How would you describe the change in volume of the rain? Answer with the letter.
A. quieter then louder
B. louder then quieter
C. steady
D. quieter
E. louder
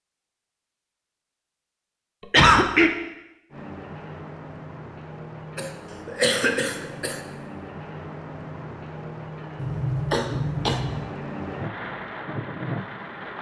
E.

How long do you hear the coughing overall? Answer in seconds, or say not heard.
4 s.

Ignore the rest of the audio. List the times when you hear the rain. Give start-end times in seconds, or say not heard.
3.5-13.3.